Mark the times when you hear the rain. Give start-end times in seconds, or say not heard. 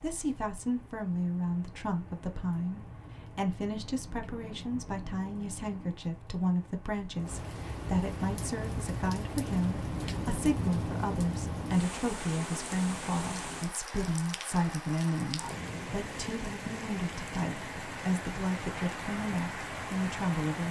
0.0-20.6.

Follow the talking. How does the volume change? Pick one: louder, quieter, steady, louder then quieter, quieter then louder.
steady.